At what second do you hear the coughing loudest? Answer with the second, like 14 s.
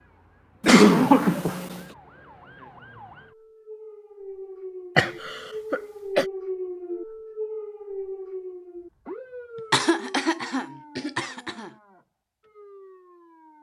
1 s.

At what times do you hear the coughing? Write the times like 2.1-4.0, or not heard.
0.6-1.8, 5.0-6.2, 9.7-11.7.